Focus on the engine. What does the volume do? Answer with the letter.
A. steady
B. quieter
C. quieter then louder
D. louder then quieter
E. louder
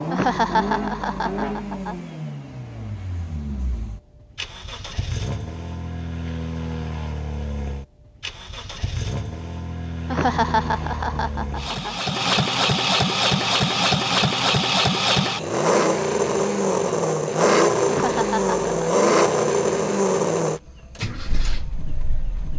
E.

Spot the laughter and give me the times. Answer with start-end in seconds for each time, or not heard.
0.1-2.0, 10.1-11.9, 17.9-19.0.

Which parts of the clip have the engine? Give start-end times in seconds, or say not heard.
0.0-22.5.